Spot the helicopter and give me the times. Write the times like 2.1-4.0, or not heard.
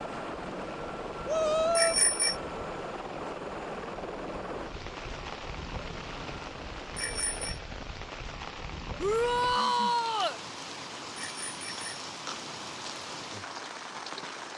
0.0-7.5.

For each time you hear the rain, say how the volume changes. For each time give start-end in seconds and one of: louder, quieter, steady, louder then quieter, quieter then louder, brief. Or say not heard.
0.0-14.5 louder.